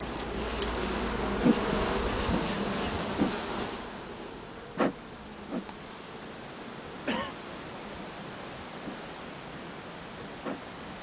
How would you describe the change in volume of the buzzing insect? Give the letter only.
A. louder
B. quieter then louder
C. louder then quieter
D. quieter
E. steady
D.